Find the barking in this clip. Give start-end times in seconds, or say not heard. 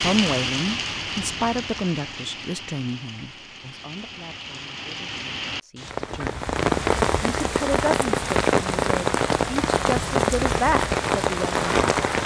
not heard.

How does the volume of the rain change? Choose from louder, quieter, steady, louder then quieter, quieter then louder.
quieter then louder.